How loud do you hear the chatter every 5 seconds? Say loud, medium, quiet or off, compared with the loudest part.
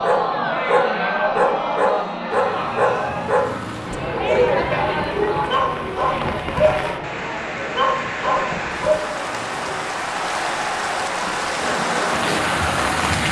loud, medium, loud.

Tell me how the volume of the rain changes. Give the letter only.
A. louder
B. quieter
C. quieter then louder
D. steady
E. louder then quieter
A.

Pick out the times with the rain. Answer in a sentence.
The rain can be heard from 2.3 to 13.2 s.